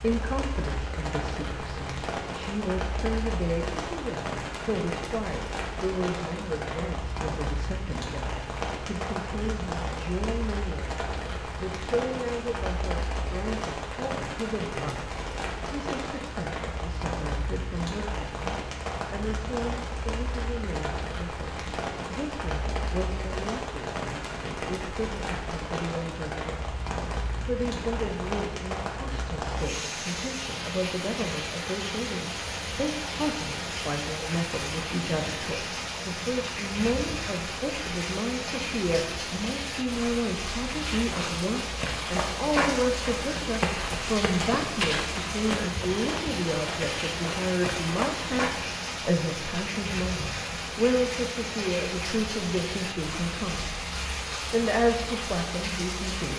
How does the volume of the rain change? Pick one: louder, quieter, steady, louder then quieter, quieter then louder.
steady.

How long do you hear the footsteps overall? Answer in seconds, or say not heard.
8 s.